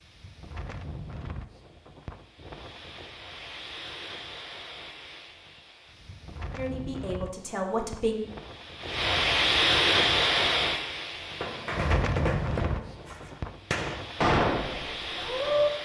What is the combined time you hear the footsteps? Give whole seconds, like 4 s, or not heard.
not heard.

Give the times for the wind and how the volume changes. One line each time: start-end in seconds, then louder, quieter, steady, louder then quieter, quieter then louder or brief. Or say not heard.
0.0-15.8 louder then quieter.